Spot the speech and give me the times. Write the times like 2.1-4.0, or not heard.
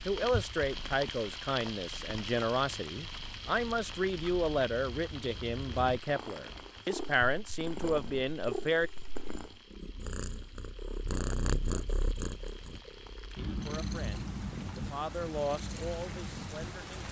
0.1-8.9, 13.3-17.0.